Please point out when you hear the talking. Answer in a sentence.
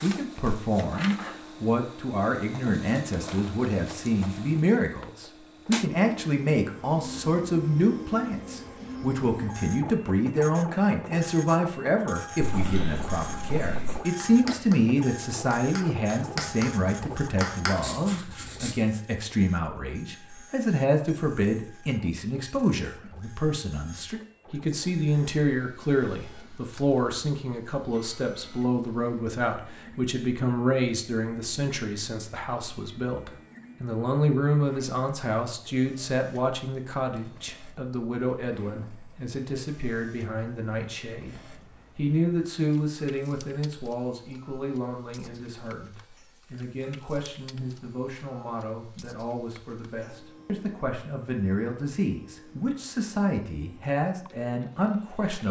The talking can be heard from 0.0 to 55.4 s.